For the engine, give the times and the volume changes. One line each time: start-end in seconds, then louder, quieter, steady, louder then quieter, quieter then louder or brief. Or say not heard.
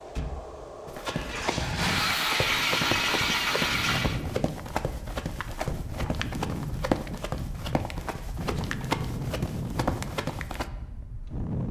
0.0-4.2 louder.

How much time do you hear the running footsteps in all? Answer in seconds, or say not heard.
10 s.